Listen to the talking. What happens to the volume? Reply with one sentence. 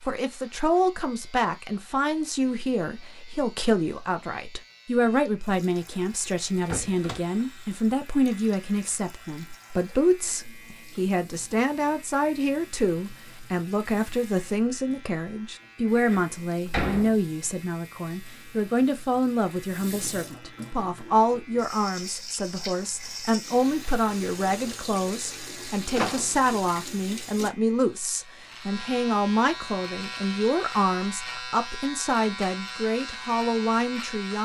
The loudness of the talking stays about the same.